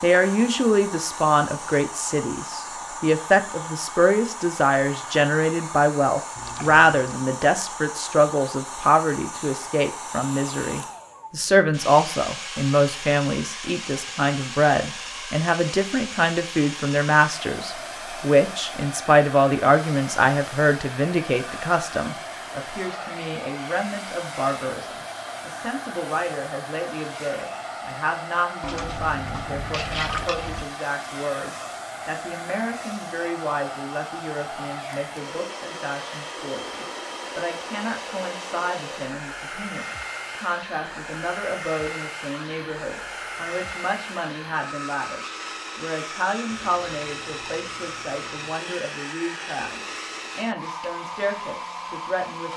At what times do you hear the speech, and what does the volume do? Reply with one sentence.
You can hear the speech from 0.0 to 52.5 s, getting quieter.